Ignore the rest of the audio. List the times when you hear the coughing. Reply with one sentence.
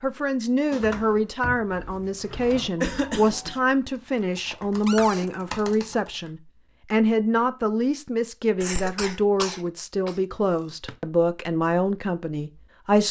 The coughing can be heard from 2.8 to 3.6 s and from 8.6 to 10.2 s.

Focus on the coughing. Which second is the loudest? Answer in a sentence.
The volume of the coughing peaks at 3 seconds.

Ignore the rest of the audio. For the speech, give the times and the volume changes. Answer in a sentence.
You can hear the speech from 0.0 to 13.0 s, at a steady volume.